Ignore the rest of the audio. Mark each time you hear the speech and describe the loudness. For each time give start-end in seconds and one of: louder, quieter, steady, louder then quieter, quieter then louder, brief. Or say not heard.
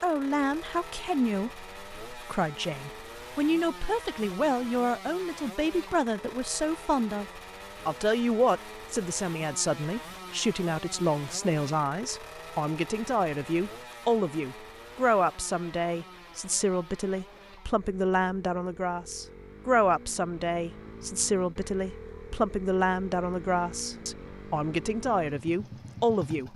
0.0-26.5 steady.